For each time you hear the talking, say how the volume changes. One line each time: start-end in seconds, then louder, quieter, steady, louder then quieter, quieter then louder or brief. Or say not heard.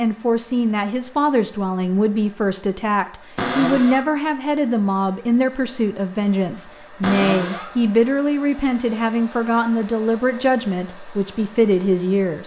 0.0-12.4 steady.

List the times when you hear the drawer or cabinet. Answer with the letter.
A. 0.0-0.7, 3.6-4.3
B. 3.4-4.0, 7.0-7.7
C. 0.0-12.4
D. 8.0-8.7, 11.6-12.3
B.